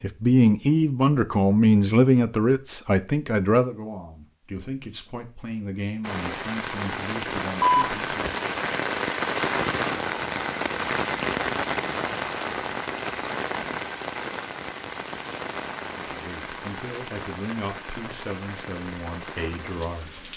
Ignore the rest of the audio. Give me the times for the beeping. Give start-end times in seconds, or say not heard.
7.6-8.3.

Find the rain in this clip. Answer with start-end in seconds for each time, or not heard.
6.0-20.3.